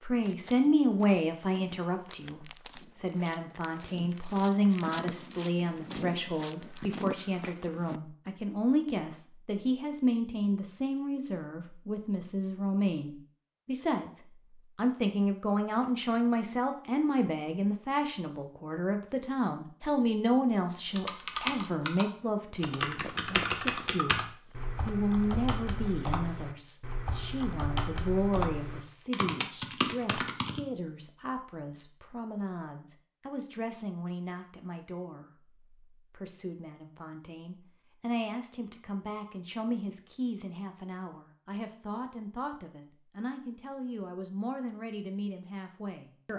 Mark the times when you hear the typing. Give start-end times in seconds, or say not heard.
20.9-30.6.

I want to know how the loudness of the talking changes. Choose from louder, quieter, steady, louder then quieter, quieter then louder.
quieter.